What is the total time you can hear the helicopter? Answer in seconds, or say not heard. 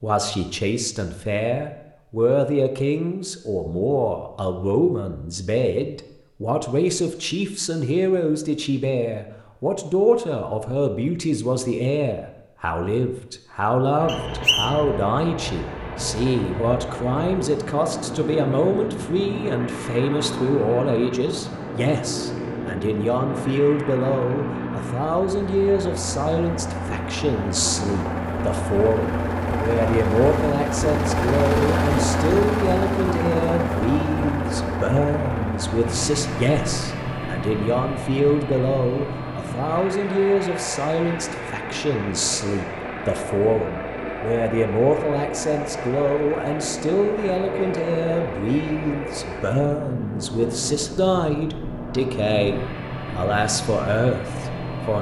41 s.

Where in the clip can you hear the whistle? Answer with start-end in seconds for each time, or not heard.
14.1-14.8.